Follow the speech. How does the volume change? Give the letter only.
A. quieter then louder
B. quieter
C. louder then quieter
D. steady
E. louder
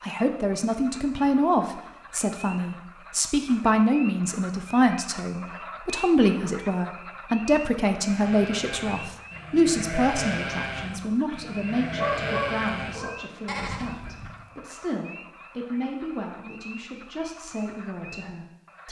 B.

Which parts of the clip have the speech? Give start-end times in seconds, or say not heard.
0.0-18.8.